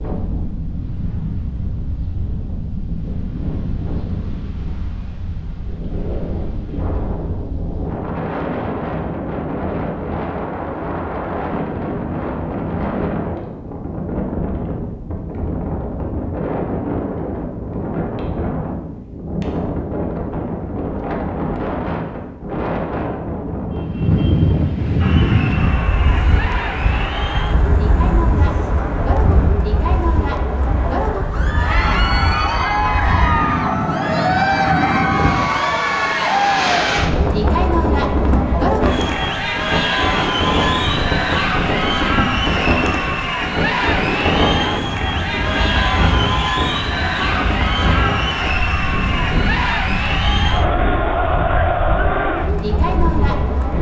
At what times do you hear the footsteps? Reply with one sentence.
The footsteps can't be heard in this clip.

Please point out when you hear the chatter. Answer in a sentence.
You can hear the chatter from 25.0 to 53.7 s.